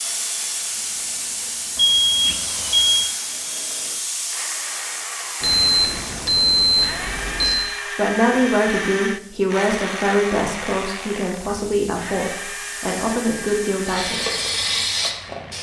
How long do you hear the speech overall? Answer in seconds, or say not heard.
7 s.